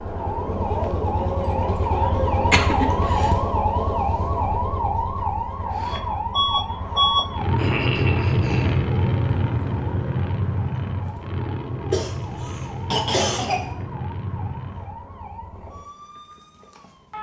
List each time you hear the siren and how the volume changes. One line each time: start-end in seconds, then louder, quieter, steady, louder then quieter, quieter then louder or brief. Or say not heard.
0.0-17.1 quieter.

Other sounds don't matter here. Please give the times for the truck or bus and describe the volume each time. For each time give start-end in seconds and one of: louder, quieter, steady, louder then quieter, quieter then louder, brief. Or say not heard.
5.7-15.1 quieter.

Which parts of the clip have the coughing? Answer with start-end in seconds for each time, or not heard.
2.3-3.3, 7.5-8.8, 11.9-13.7.